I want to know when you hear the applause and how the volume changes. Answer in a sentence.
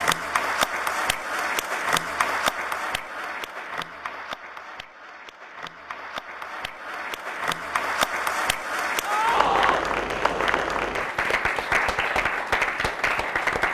The applause can be heard from 0.0 to 13.6 s, getting quieter then louder.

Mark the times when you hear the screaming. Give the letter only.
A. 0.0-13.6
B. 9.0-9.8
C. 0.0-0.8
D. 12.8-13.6
B.